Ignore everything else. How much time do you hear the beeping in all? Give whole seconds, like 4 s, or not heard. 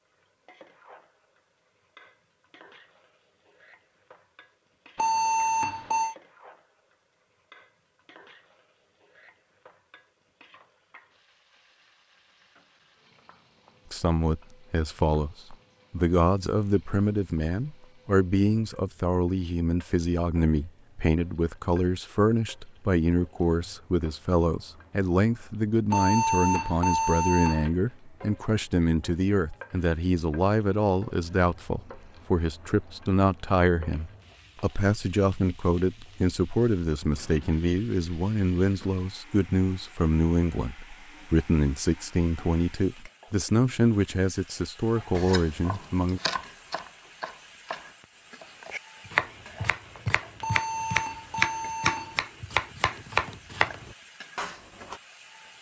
5 s.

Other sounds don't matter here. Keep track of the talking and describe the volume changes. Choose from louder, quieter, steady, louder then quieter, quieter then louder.
steady.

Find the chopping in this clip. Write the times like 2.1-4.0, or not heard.
45.0-55.0.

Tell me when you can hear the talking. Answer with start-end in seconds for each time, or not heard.
13.9-46.2.